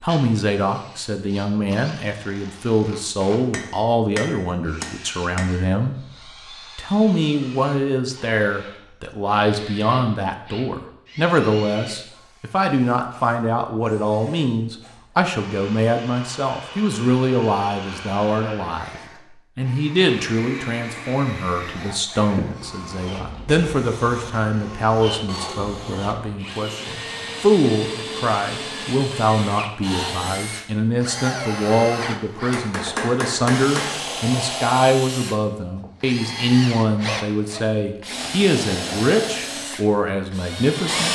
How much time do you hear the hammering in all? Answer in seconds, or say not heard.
4 s.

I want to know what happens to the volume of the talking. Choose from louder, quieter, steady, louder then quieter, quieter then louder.
steady.